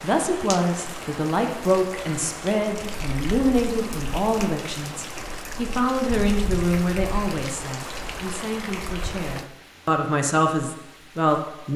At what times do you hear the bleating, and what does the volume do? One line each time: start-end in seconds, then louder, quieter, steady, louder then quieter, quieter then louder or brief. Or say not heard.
not heard.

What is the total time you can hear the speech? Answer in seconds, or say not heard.
12 s.